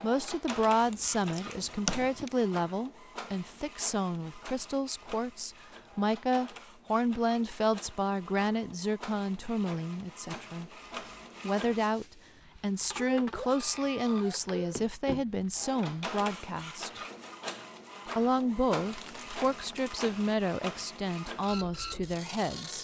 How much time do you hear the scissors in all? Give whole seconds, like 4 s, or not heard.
2 s.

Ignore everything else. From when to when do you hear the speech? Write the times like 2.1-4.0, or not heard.
0.0-10.7, 11.4-17.0, 18.1-22.7.